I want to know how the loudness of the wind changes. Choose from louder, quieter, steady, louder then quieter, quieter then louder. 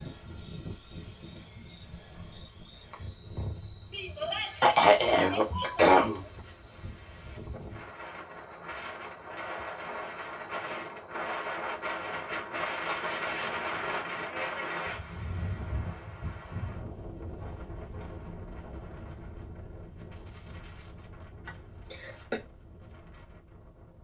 louder then quieter.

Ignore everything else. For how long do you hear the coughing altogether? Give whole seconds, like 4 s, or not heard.
3 s.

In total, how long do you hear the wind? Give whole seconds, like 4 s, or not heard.
24 s.